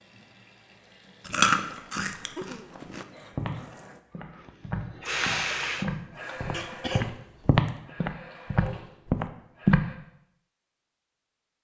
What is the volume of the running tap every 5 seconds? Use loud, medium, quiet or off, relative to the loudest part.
quiet, loud, off.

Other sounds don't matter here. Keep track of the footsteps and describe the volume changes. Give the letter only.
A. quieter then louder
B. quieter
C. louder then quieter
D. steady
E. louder
E.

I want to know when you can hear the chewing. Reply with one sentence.
The chewing can be heard from 1.2 to 3.0 s.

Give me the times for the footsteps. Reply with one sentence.
You can hear the footsteps from 3.3 to 9.8 s.